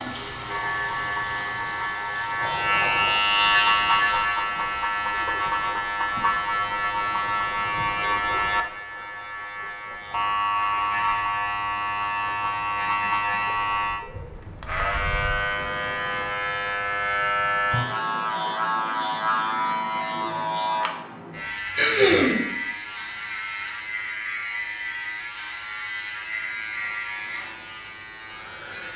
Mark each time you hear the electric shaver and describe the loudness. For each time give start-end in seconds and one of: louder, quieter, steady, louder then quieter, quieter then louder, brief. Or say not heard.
0.0-28.9 quieter.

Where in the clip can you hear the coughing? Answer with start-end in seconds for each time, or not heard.
21.8-22.4.